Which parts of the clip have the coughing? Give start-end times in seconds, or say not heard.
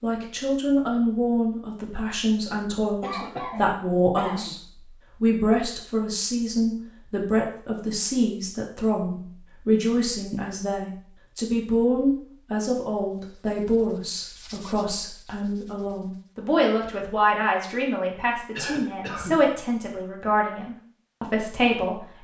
3.0-4.5, 18.6-19.4.